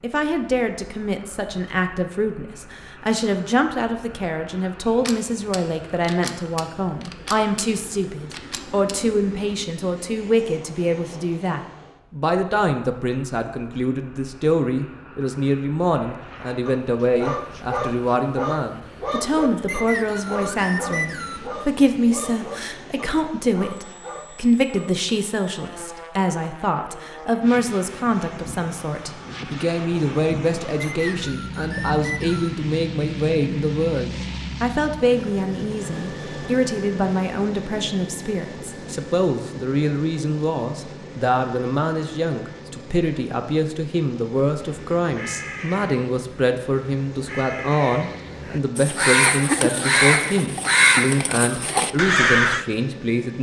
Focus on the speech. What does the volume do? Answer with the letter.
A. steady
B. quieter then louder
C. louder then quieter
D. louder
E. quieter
A.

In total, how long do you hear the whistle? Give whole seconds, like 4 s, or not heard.
4 s.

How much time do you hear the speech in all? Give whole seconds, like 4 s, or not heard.
53 s.